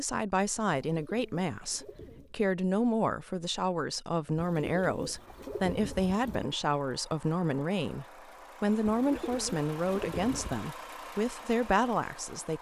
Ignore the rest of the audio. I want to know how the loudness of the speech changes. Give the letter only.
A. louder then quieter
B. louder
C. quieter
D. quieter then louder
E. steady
E.